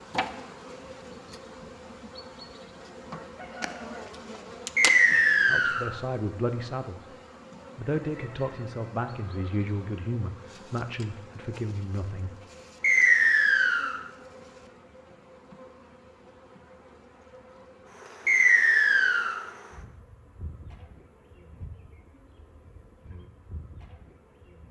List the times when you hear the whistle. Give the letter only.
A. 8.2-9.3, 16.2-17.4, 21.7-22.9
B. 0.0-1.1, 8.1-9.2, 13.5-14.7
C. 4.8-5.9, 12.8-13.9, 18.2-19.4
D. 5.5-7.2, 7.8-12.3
C.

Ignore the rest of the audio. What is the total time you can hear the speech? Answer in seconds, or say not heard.
6 s.